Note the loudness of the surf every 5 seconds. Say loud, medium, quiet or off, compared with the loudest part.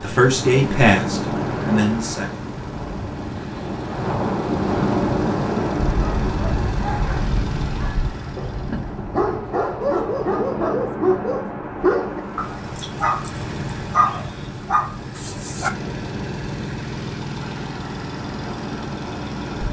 loud, loud, medium, medium.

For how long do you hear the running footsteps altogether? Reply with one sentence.
The running footsteps can't be heard in this clip.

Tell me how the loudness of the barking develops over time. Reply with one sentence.
The volume of the barking goes up.